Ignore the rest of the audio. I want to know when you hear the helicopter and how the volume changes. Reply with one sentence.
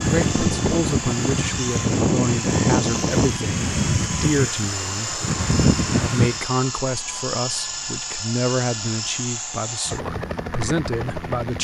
The helicopter can be heard from 0.0 to 11.5 s, at a steady volume.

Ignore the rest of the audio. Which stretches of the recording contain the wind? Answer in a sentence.
You can hear the wind from 0.0 to 6.5 s.